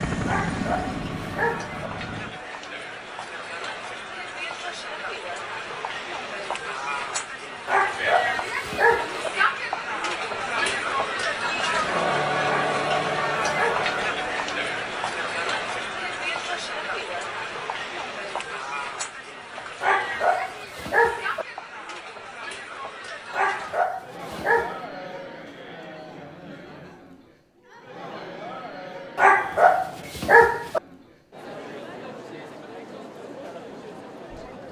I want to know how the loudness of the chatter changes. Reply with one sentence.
The volume of the chatter goes up, then down.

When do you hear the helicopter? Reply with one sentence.
You can hear the helicopter from 0.0 to 2.4 s.